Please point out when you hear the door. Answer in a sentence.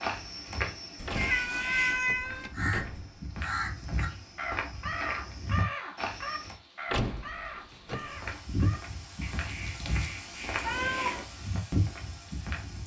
The door can be heard from 1.1 to 3.5 s and from 6.9 to 8.3 s.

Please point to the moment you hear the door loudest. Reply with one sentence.
The loudest moment of the door is at 7 seconds.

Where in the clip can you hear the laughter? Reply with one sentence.
You can't hear the laughter here.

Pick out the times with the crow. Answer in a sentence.
The crow can be heard from 1.1 to 11.2 s.